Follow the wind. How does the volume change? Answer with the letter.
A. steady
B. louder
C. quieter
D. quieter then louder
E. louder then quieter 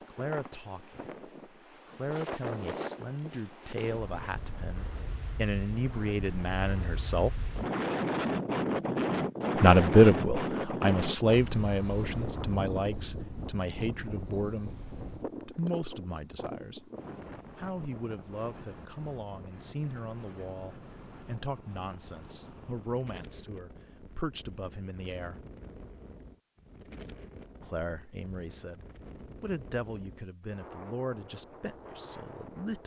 E.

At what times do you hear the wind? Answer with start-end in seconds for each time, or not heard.
0.0-32.8.